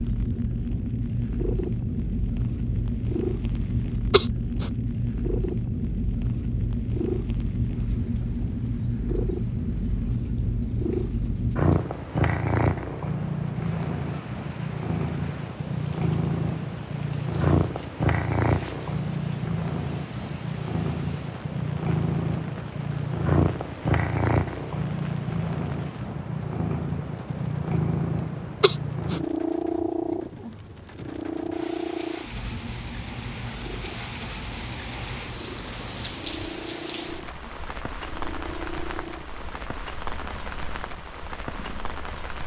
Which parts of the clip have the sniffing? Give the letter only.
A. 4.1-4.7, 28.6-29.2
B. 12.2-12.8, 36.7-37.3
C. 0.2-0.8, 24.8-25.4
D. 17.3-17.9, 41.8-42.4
A.